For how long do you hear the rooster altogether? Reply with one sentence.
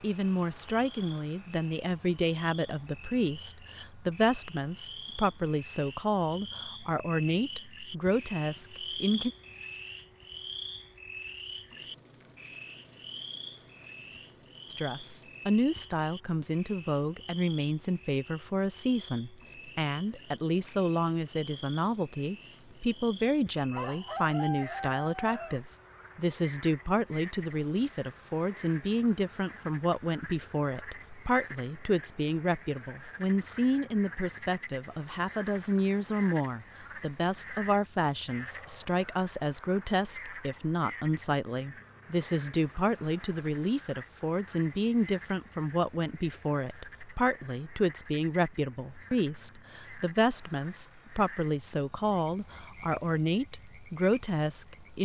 You can hear the rooster for 2 seconds altogether.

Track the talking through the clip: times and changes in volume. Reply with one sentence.
The talking can be heard from 0.0 to 9.3 s, at a steady volume; and from 14.7 to 54.9 s, at a steady volume.